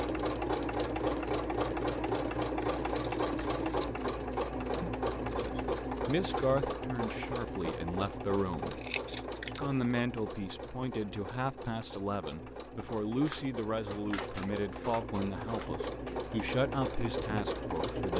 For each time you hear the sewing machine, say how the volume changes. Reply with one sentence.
The sewing machine can be heard from 0.0 to 18.1 s, getting quieter then louder.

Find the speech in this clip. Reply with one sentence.
You can hear the speech from 5.2 to 8.8 s and from 9.6 to 18.1 s.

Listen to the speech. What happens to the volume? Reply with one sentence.
The loudness of the speech stays about the same.